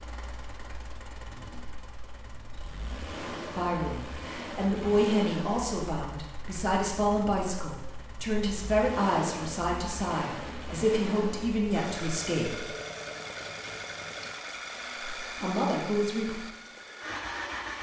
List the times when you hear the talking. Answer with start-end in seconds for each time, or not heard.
3.5-12.6, 15.2-16.4.